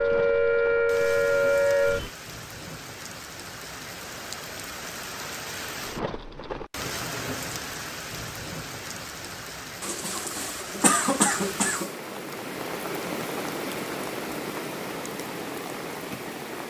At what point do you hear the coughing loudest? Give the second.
11 s.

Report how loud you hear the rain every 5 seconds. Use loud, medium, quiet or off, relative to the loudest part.
medium, loud, loud, loud.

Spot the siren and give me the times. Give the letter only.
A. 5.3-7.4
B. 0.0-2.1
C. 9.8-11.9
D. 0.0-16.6
B.